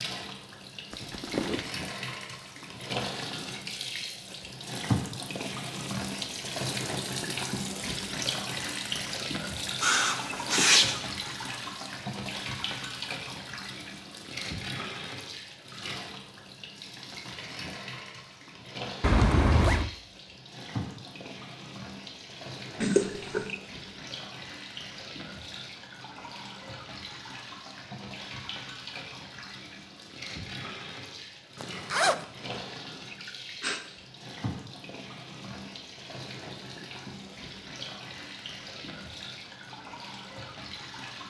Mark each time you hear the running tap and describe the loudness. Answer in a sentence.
You can hear the running tap from 0.0 to 41.2 s, getting quieter.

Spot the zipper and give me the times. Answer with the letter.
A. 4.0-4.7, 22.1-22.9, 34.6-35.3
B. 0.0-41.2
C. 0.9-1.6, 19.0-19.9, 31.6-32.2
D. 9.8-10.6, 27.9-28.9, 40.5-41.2
C.